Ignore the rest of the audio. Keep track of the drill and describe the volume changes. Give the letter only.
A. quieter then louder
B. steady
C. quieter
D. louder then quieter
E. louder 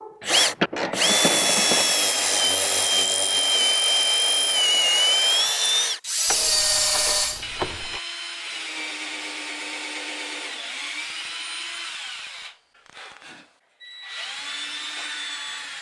C.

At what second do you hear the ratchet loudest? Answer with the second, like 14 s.
1 s.